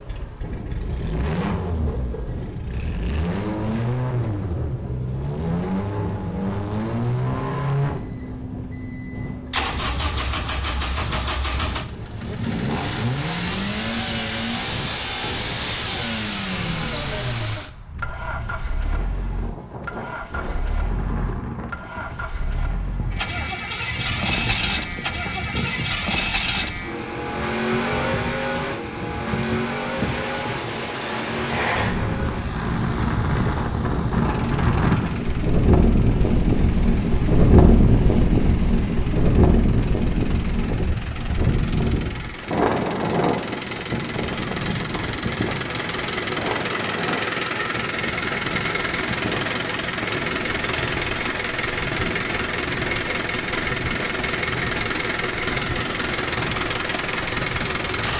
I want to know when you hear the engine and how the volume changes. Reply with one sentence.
The engine can be heard from 0.0 to 58.1 s, getting quieter then louder.